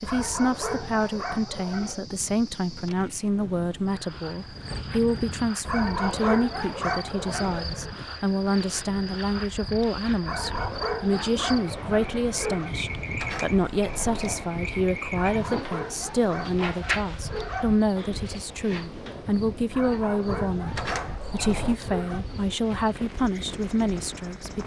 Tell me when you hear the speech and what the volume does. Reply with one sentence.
You can hear the speech from 0.0 to 24.6 s, at a steady volume.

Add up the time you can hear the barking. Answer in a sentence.
The barking can be heard for 12 seconds in total.